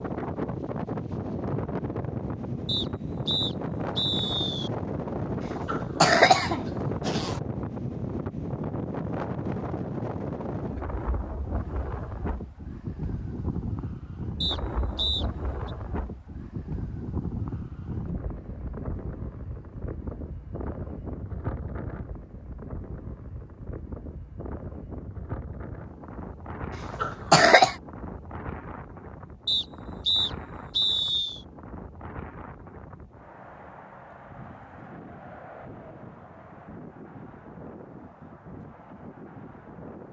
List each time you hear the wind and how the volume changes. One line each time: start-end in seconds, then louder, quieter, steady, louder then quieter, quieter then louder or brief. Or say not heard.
0.0-40.0 quieter.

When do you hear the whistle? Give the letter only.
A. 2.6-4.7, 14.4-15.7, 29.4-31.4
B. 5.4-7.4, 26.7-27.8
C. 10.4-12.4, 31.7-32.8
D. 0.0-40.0
A.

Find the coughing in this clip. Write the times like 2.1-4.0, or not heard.
5.4-7.4, 26.7-27.8.